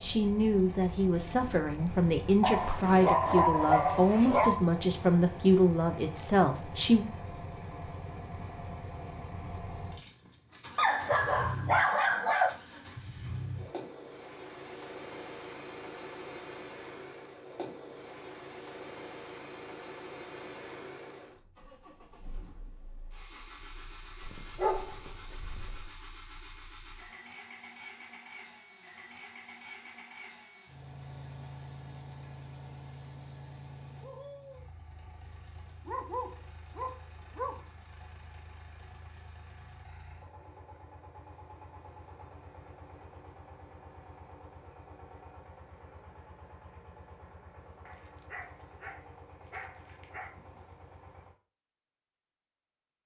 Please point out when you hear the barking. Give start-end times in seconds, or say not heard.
2.4-4.6, 10.8-12.6, 24.2-25.9, 35.9-37.6, 47.9-50.3.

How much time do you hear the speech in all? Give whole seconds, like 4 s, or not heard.
7 s.